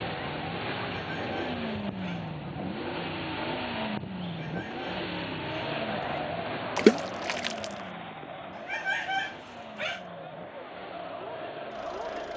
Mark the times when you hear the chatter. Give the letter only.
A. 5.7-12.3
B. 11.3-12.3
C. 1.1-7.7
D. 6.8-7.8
A.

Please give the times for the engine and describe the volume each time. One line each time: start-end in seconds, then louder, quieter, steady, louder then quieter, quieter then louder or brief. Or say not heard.
0.0-12.3 quieter.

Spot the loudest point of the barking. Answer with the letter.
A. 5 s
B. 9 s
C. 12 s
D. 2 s
B.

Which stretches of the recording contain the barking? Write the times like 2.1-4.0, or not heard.
0.8-2.3, 4.2-6.2, 8.6-10.1.